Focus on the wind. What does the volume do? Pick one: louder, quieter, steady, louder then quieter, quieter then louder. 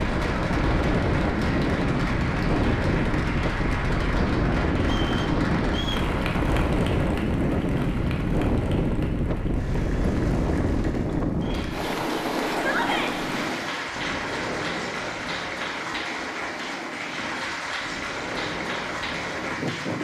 quieter.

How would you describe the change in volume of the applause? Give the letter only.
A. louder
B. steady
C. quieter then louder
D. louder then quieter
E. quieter
C.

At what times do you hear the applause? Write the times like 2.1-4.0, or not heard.
0.0-19.9.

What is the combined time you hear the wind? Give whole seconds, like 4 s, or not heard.
20 s.